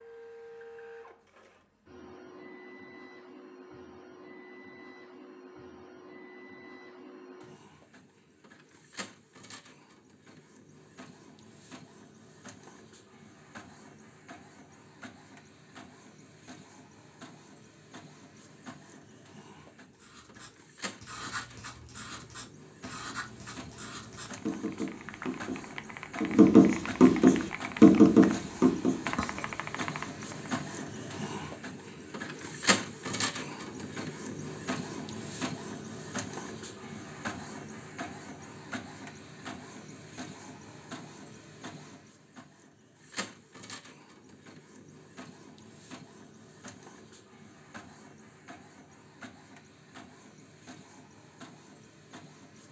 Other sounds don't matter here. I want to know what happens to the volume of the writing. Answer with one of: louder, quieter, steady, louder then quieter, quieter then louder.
louder.